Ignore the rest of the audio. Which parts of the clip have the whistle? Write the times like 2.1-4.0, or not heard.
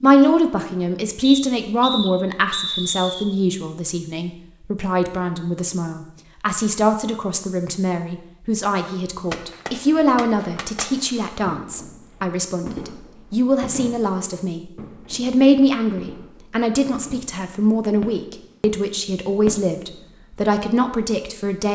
1.2-3.2.